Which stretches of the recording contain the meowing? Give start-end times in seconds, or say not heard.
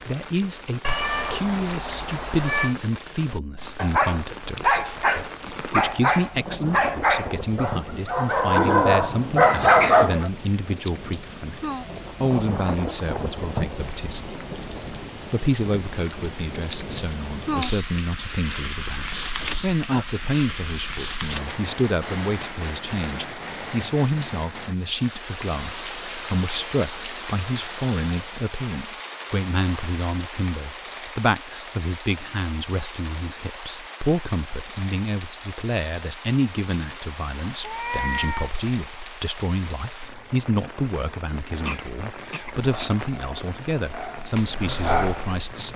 0.8-2.8, 37.6-38.5.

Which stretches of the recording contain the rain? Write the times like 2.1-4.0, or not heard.
0.0-45.7.